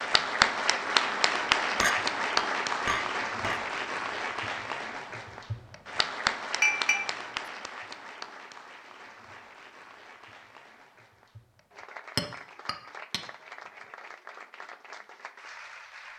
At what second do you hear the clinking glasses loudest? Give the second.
7 s.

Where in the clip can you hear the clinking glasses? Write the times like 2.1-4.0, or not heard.
1.8-3.6, 6.6-7.5, 12.2-13.2.